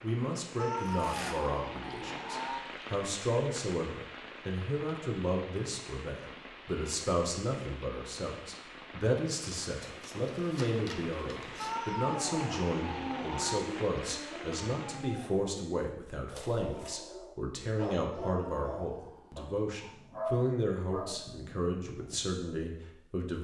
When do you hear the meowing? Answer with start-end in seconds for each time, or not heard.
0.6-2.6, 11.6-13.6, 18.1-19.9.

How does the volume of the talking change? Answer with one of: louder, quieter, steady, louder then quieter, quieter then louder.
steady.